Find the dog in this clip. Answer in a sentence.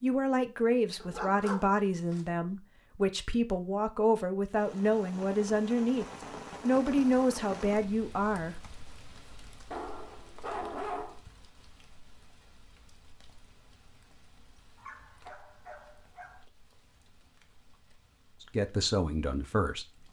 The dog can be heard from 1.0 to 2.2 s, from 9.7 to 11.2 s and from 14.8 to 16.4 s.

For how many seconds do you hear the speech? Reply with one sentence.
The speech can be heard for 10 seconds in total.